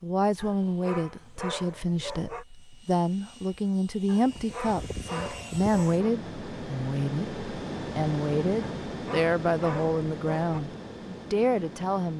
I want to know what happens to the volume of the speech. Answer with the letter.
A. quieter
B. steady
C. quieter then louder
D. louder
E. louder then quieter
B.